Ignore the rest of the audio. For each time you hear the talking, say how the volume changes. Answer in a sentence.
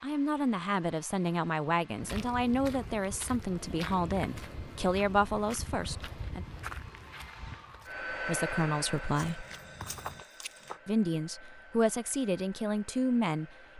The talking can be heard from 0.0 to 6.5 s, at a steady volume; briefly from 8.2 to 9.4 s; and briefly from 10.8 to 13.7 s.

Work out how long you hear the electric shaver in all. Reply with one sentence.
The electric shaver can't be heard in this clip.